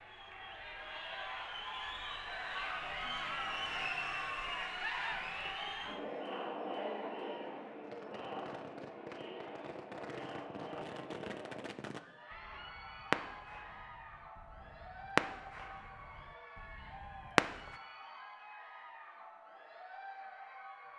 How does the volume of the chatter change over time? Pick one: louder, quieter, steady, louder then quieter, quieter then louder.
quieter.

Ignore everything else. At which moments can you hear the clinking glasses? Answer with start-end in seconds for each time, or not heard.
not heard.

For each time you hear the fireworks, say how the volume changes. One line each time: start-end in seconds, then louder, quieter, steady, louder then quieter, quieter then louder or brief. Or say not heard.
7.8-17.8 louder.